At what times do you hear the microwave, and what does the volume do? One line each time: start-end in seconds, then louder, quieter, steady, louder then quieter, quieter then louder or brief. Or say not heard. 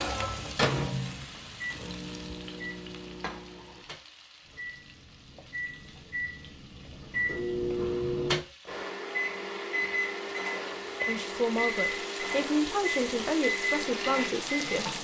0.0-14.9 quieter then louder.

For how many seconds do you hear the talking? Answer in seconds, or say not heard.
4 s.